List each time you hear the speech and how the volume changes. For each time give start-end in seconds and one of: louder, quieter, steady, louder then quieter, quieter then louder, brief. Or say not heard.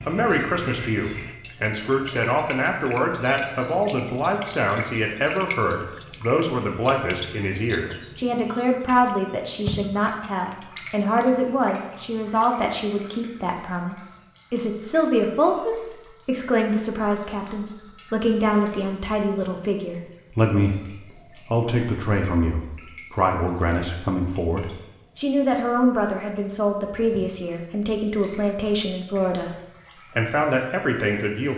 0.0-29.6 steady
30.1-31.5 brief.